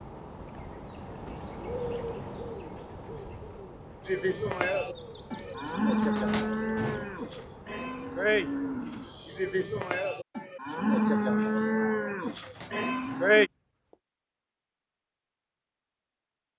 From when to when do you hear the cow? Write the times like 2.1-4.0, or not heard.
4.0-13.5.